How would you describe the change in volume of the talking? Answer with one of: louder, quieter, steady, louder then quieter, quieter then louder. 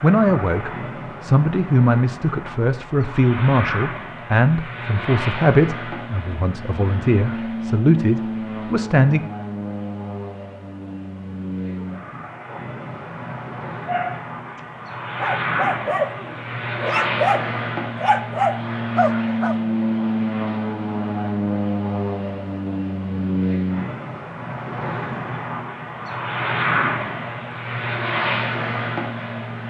steady.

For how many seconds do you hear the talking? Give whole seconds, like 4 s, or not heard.
9 s.